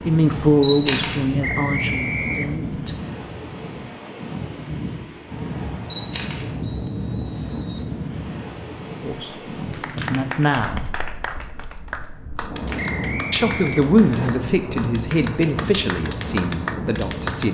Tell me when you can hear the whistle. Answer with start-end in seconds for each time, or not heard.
1.4-2.6, 6.6-7.9, 12.8-14.3.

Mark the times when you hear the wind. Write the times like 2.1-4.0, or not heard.
0.0-17.4.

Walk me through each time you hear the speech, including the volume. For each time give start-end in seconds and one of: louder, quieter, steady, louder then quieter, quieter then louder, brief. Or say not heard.
0.1-3.0 brief
9.0-10.8 brief
13.3-17.4 quieter.